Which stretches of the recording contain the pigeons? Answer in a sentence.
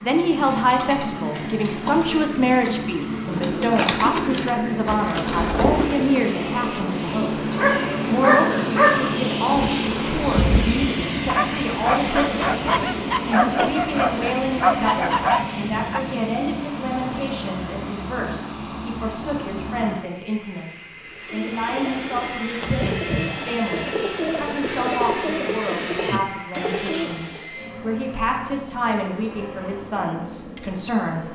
You can hear the pigeons from 0.1 to 6.3 s and from 21.1 to 27.4 s.